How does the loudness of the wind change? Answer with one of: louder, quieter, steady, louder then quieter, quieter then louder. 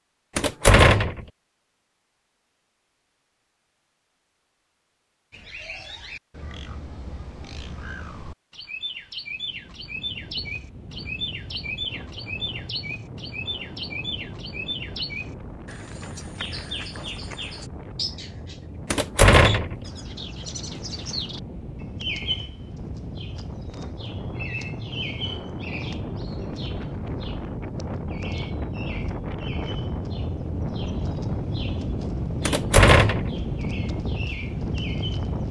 louder.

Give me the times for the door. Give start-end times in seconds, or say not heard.
0.3-1.2, 18.9-19.8, 32.5-33.3.